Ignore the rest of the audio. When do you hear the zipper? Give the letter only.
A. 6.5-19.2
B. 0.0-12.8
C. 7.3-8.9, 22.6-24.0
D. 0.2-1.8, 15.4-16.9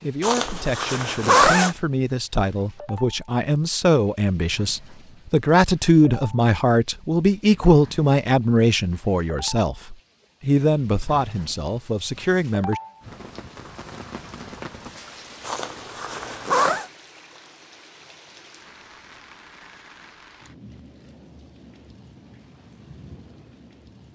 D.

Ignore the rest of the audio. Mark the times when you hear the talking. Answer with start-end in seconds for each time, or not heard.
0.0-12.8.